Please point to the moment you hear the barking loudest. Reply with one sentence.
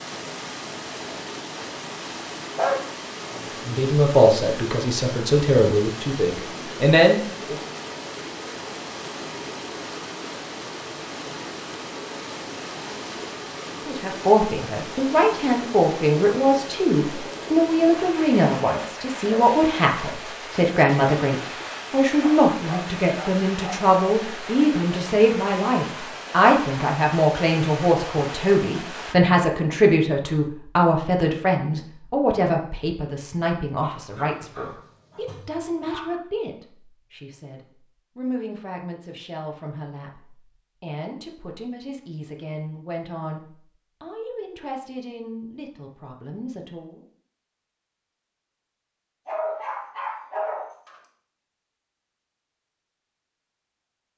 The loudest moment of the barking is at 3 seconds.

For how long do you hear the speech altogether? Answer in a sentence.
The speech can be heard for 37 seconds in total.